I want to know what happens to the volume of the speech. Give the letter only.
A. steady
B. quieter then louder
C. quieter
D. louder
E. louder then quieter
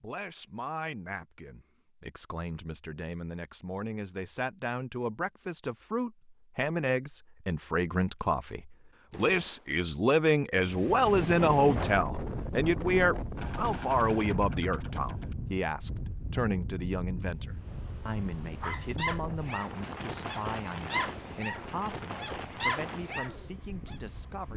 E.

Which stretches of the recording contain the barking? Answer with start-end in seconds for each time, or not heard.
18.6-23.9.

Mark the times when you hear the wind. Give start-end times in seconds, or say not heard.
10.6-24.5.